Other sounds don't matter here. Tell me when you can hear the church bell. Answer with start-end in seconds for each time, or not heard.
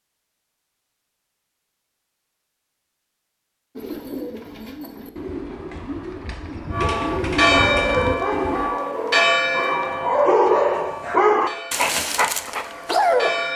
6.7-13.5.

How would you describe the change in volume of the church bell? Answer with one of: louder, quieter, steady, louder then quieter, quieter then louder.
quieter.